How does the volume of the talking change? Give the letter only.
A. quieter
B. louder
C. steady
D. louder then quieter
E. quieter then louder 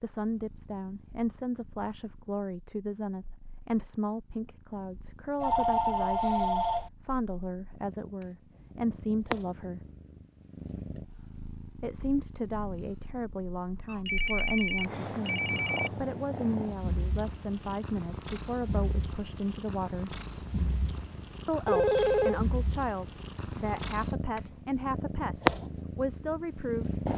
C.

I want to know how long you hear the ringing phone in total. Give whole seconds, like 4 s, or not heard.
4 s.